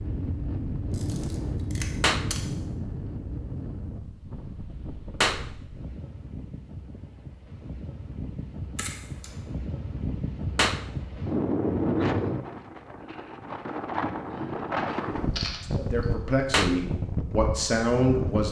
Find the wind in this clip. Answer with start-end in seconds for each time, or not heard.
0.0-18.4.